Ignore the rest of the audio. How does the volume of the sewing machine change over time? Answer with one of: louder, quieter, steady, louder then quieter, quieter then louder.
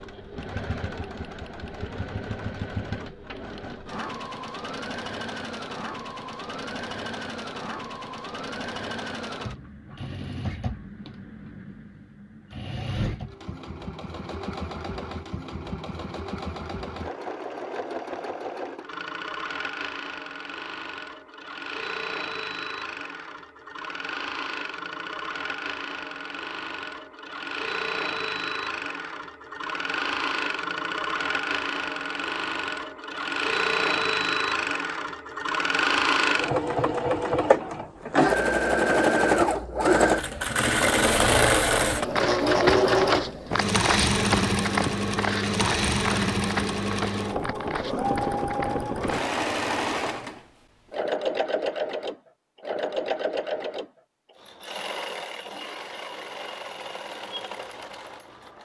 louder then quieter.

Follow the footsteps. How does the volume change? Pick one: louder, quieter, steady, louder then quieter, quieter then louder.
quieter.